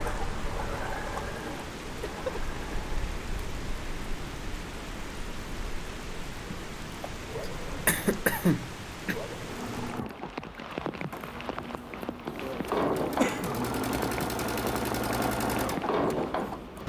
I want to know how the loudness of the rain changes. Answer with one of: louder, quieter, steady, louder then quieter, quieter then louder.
louder.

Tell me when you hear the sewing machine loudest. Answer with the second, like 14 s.
15 s.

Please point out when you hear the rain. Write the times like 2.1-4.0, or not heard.
0.0-16.8.